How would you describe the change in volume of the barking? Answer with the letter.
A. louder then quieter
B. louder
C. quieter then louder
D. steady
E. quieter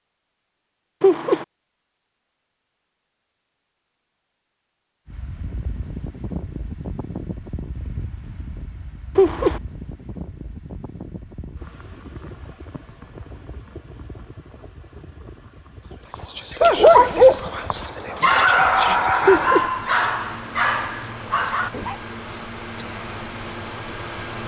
E.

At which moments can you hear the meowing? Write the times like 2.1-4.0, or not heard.
1.0-1.4, 9.2-9.6, 19.2-19.7.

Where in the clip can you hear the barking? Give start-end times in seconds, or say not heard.
16.1-22.0.